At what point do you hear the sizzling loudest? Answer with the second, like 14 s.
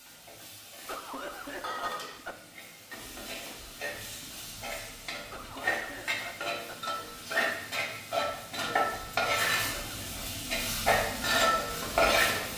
12 s.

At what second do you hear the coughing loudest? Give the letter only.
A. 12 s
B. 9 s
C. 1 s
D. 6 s
C.